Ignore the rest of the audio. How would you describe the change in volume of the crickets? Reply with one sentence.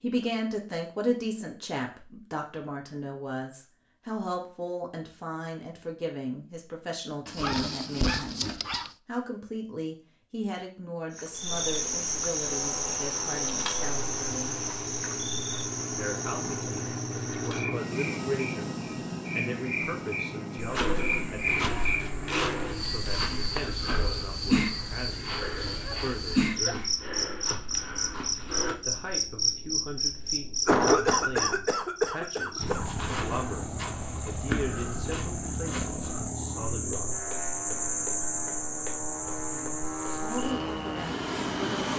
The volume of the crickets stays about the same.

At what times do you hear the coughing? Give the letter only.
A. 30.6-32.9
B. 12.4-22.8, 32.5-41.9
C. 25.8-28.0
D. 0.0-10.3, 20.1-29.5
A.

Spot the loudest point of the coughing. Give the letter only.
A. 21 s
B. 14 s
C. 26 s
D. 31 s
D.